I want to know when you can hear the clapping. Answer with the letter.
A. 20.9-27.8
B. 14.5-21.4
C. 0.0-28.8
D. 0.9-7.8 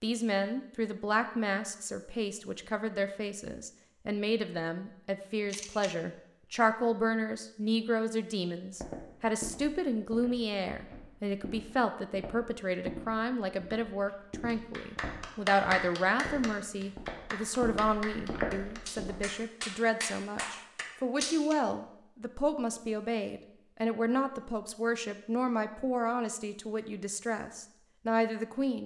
B.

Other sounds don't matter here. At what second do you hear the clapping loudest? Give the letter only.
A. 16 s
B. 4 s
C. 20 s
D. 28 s
A.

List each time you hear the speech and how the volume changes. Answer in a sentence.
You can hear the speech from 0.0 to 28.8 s, at a steady volume.